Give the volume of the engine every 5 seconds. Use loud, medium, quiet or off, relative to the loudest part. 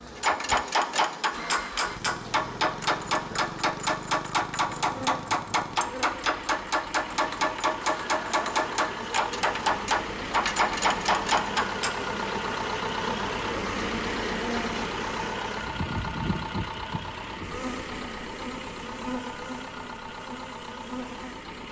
medium, medium, loud, loud, medium.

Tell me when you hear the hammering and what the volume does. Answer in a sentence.
The hammering can be heard from 0.1 to 11.9 s, at a steady volume.